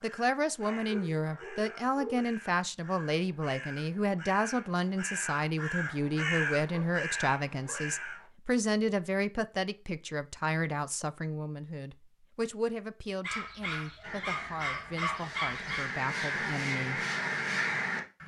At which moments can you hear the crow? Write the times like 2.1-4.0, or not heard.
0.0-8.3, 14.0-18.2.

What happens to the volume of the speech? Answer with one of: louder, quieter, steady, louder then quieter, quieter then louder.
quieter.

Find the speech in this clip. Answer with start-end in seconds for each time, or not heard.
0.0-17.0.